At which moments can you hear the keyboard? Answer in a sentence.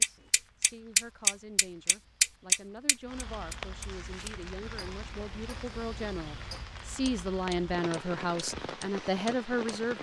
You can't hear the keyboard here.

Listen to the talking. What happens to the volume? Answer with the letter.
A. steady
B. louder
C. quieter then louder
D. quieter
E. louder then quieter
B.